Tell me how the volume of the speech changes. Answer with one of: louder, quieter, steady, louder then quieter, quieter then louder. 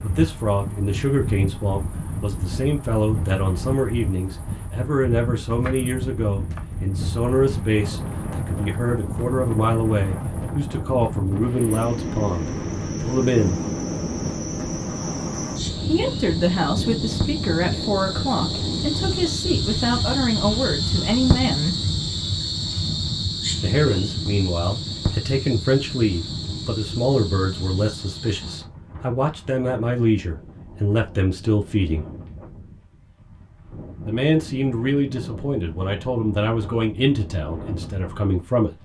steady.